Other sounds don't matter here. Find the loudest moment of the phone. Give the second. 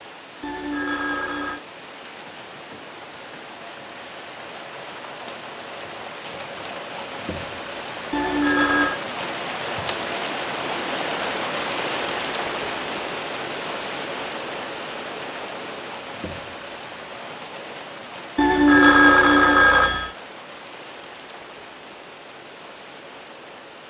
19 s.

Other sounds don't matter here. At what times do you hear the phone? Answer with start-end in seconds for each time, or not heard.
0.4-1.6, 8.1-9.0, 18.4-20.1.